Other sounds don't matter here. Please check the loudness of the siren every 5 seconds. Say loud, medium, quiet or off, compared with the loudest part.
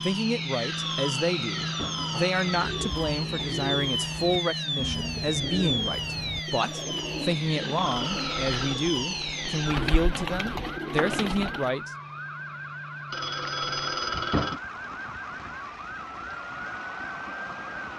loud, loud, medium, medium.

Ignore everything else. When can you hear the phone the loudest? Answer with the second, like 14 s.
14 s.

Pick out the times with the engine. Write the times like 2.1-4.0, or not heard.
0.0-17.9.